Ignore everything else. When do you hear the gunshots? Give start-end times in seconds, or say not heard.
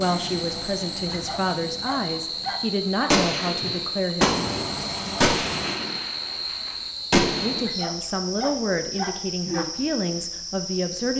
3.1-7.7.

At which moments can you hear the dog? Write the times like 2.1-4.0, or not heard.
1.1-3.1, 7.7-9.7.